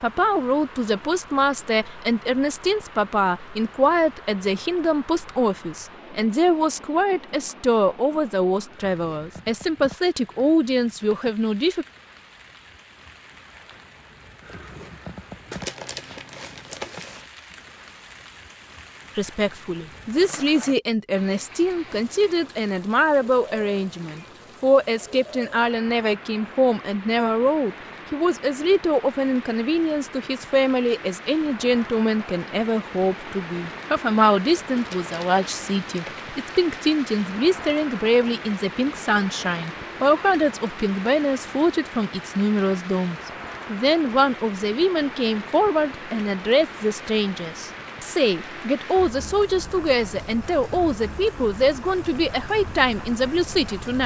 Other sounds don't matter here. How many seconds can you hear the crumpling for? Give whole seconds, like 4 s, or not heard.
3 s.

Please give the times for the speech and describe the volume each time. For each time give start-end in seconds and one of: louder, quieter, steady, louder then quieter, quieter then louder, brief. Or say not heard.
0.0-11.8 steady
19.1-54.0 steady.